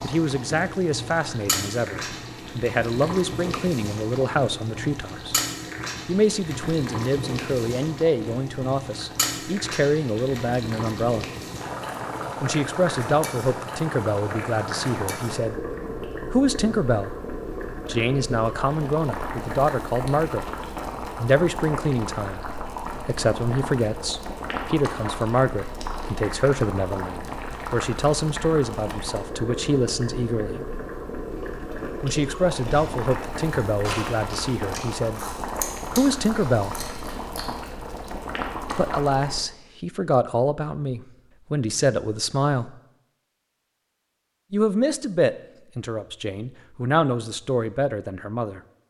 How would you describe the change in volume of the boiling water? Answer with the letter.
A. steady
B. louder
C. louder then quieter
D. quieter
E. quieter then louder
A.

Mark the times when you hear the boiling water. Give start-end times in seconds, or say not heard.
0.0-39.4.